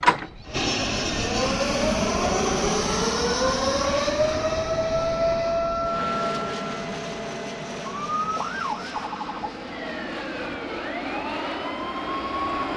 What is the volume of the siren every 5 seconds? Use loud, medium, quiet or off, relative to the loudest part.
loud, loud, medium.